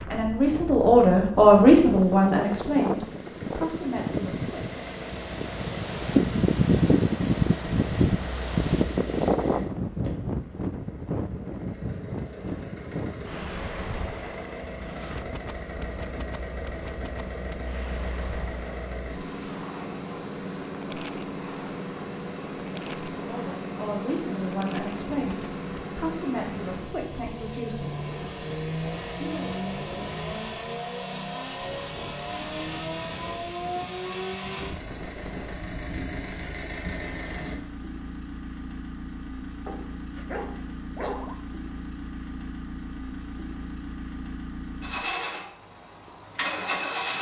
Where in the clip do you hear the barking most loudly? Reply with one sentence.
The volume of the barking peaks at 41 seconds.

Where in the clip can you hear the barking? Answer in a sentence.
The barking can be heard from 39.6 to 41.4 s.